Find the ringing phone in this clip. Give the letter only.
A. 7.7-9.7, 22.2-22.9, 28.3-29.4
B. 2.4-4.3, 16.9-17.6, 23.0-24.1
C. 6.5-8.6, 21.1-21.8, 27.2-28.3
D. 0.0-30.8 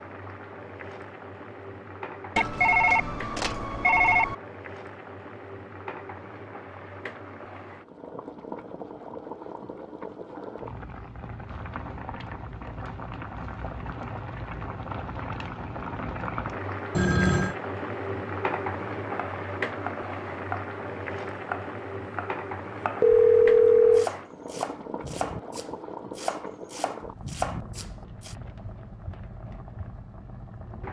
B.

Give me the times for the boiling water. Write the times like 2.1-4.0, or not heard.
0.0-30.8.